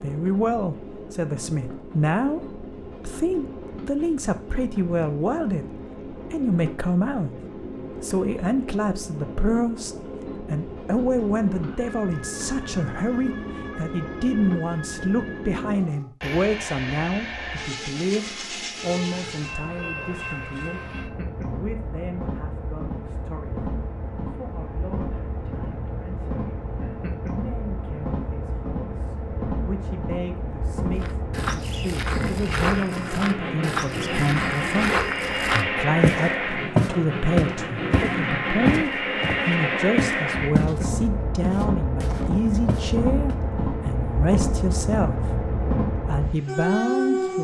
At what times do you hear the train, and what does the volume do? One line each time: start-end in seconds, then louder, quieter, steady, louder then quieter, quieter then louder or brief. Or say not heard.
0.0-47.4 louder.